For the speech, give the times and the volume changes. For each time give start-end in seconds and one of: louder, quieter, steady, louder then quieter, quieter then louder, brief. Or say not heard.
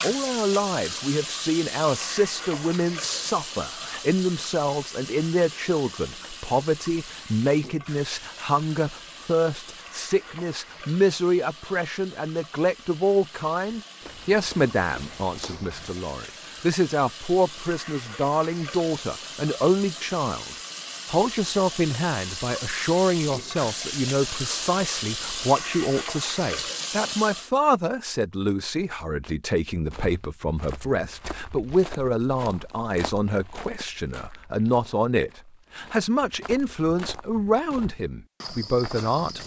0.0-39.4 steady.